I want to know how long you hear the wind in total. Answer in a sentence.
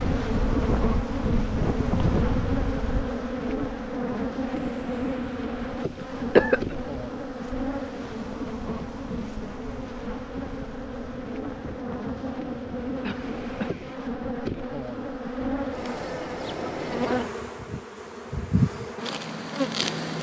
The wind can be heard for 14 seconds in total.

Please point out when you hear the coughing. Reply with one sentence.
The coughing can be heard from 6.0 to 6.8 s and from 13.0 to 13.8 s.